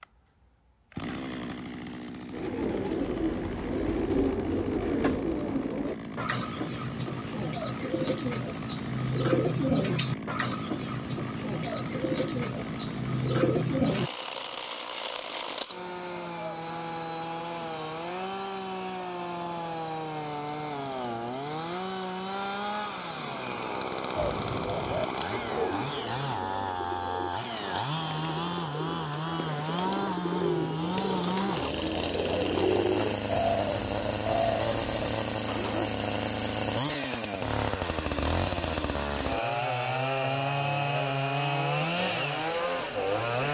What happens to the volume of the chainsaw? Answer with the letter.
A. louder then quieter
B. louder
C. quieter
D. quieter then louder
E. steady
B.